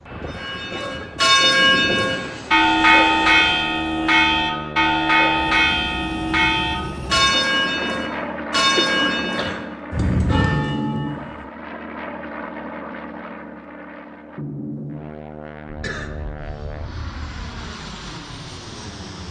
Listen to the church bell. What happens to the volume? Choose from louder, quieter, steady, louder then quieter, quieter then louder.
quieter.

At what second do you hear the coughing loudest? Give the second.
9 s.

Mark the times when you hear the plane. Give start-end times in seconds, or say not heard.
0.0-19.2.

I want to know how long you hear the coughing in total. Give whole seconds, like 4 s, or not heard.
4 s.